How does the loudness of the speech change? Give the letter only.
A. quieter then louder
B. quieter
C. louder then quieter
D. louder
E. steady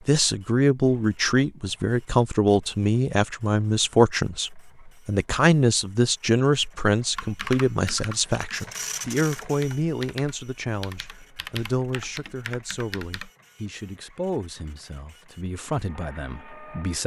B.